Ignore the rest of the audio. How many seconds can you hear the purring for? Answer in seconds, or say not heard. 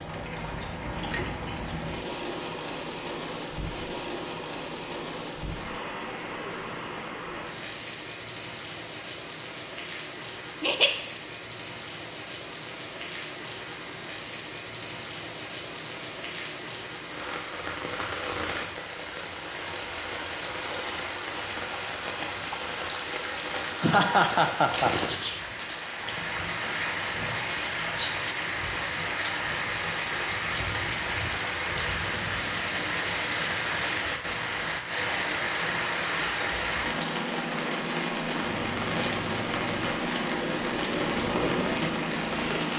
4 s.